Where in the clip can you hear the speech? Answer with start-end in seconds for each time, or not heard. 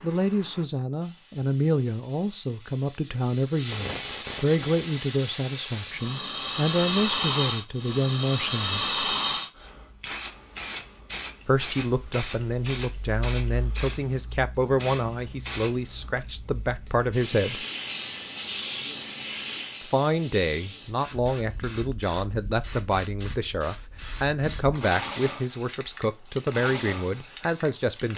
0.0-8.9, 11.4-17.6, 19.8-28.1.